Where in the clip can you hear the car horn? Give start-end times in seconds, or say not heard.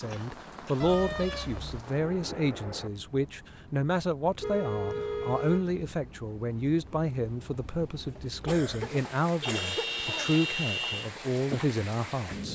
0.8-1.9, 4.3-5.8, 9.4-11.1.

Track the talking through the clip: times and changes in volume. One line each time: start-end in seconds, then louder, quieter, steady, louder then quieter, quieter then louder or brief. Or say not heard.
0.0-12.5 steady.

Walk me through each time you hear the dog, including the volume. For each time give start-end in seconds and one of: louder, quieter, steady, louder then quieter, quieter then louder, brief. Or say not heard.
not heard.